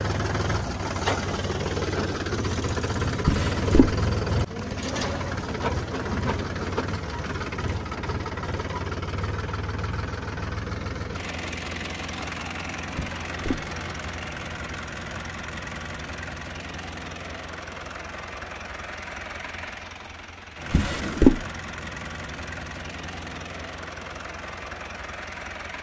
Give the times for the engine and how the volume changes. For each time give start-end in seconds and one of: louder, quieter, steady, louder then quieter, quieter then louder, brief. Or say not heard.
0.0-25.7 quieter.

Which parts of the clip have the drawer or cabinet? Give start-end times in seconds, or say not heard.
3.2-4.0, 12.9-13.7, 20.7-21.4.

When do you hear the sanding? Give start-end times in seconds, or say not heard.
not heard.